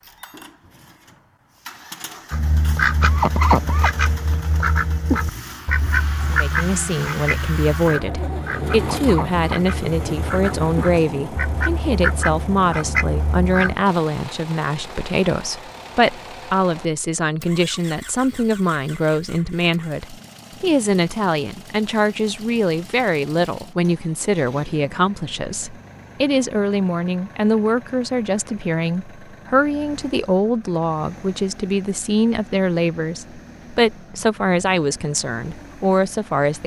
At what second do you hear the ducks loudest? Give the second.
3 s.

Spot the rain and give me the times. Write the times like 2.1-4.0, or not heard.
not heard.